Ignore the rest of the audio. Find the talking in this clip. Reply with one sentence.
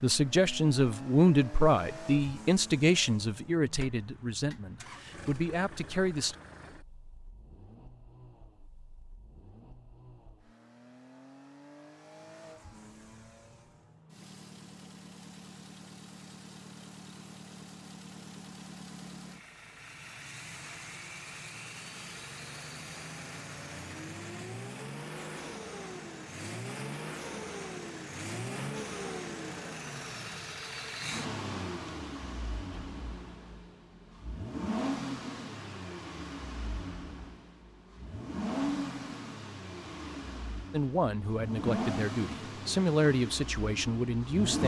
The talking can be heard from 0.0 to 6.3 s and from 40.7 to 44.6 s.